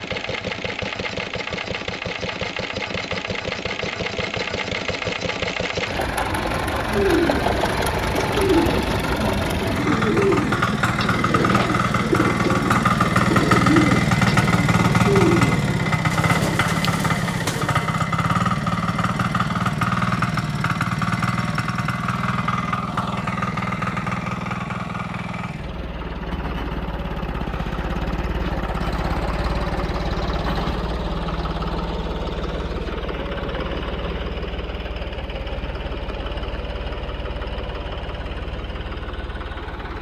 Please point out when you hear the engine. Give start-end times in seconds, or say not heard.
0.0-39.9.